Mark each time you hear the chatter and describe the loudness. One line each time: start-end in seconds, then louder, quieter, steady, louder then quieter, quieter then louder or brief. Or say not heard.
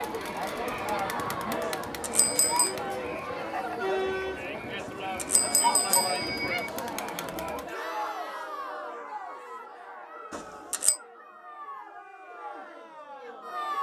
0.0-13.7 quieter.